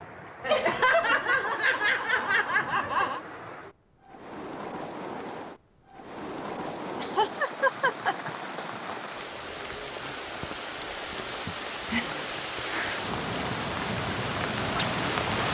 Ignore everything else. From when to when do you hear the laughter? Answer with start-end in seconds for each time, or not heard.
0.4-3.2, 7.0-8.3, 11.4-12.1.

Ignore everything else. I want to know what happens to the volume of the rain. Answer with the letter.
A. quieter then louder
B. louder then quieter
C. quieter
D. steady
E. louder
E.